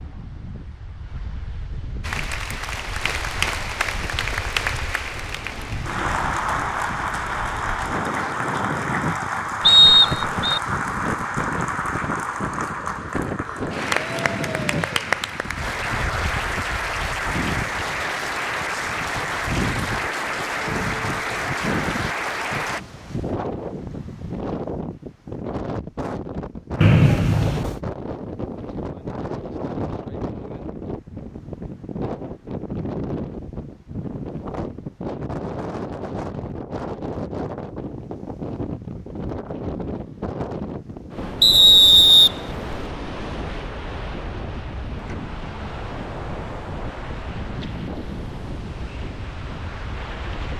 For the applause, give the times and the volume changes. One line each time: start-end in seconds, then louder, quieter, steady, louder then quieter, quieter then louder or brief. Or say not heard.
2.0-22.8 steady.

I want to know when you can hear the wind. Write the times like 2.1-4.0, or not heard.
0.0-50.5.